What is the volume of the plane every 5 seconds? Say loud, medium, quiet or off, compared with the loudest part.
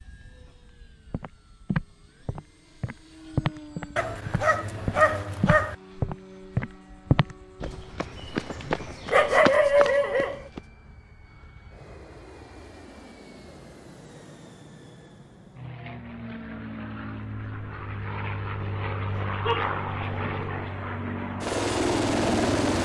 quiet, quiet, quiet, medium, loud.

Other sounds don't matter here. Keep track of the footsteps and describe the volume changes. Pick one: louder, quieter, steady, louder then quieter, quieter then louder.
steady.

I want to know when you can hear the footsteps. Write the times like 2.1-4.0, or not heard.
1.1-10.6.